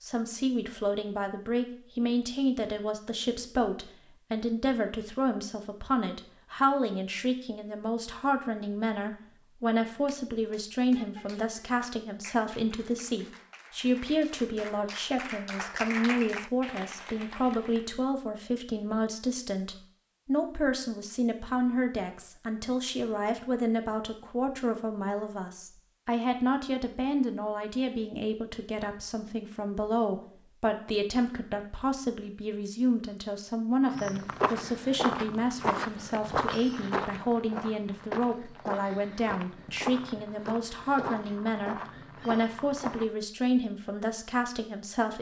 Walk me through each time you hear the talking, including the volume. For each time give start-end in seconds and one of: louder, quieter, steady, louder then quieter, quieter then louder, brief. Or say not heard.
0.0-45.1 steady.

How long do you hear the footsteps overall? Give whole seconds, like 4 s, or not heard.
9 s.